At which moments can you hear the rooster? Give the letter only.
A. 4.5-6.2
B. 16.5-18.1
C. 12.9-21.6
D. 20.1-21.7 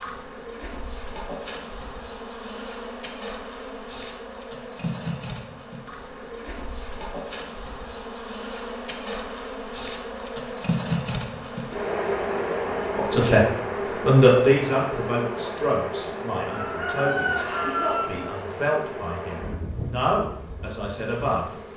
B.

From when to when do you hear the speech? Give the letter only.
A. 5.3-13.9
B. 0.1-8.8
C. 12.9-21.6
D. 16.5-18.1
C.